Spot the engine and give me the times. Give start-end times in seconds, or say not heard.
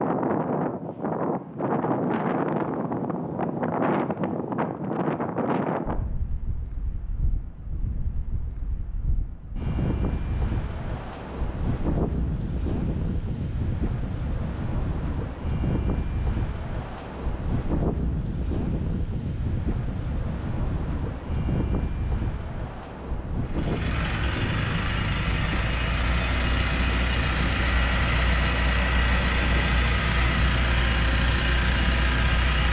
23.4-32.6.